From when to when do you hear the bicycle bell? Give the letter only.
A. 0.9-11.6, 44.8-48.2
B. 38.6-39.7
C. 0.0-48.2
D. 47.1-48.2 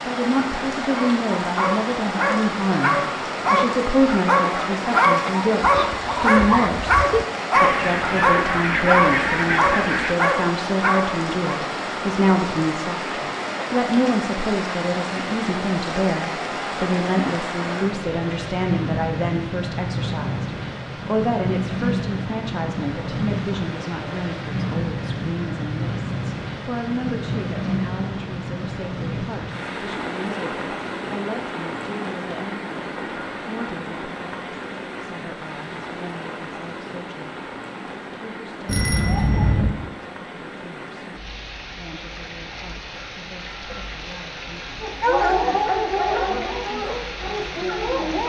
B.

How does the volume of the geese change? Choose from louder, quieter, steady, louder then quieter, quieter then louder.
steady.